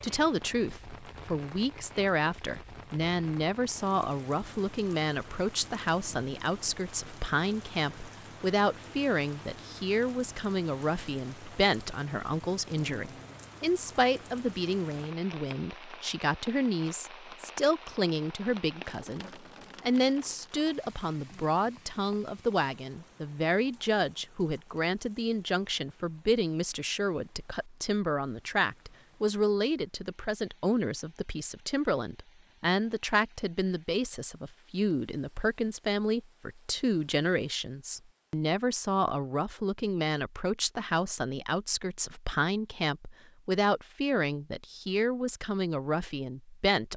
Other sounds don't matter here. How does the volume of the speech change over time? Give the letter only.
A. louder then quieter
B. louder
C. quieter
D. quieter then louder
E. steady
E.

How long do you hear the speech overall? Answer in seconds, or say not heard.
47 s.